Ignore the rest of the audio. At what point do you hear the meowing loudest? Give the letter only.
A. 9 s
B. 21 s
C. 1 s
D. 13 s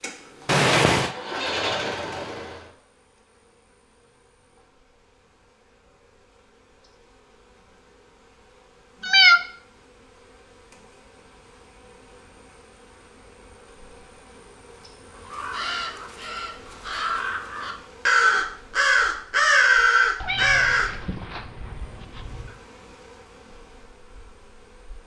A.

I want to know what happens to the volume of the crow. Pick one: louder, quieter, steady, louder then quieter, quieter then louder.
louder.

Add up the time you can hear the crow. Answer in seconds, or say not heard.
6 s.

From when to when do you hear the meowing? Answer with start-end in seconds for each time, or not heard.
0.5-1.1, 9.0-9.4, 20.2-22.6.